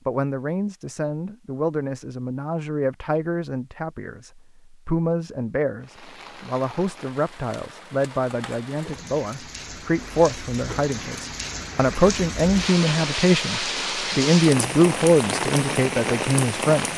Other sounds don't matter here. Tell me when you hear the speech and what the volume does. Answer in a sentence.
You can hear the speech from 0.1 to 16.9 s, getting louder.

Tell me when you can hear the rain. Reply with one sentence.
You can hear the rain from 5.8 to 16.9 s.